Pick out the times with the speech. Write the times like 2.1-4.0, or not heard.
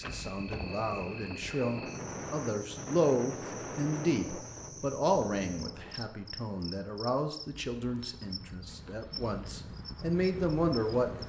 0.0-11.2.